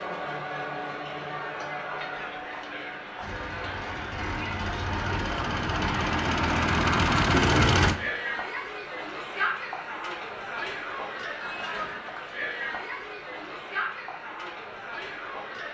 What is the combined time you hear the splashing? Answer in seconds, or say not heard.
not heard.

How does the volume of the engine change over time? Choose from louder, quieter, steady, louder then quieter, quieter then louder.
louder.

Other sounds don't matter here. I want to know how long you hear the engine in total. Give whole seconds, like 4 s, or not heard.
5 s.